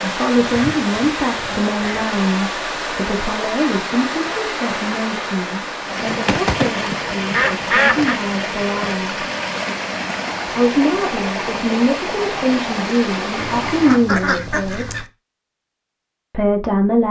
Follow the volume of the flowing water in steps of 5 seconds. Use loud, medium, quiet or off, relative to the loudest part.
loud, loud, loud, off.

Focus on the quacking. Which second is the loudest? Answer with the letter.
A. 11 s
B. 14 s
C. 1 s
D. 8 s
D.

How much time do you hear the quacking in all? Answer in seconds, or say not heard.
5 s.